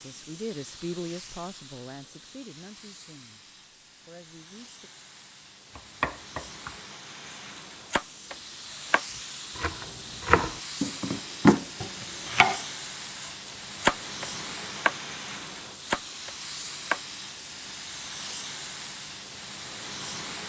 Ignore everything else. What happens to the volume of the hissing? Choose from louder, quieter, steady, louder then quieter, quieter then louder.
louder.